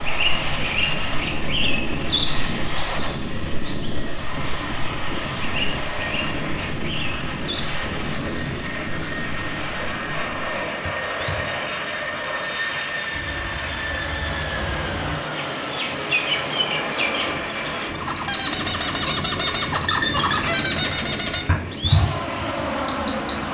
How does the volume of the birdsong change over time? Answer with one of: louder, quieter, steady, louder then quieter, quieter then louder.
quieter then louder.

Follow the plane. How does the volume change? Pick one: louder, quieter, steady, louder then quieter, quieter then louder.
steady.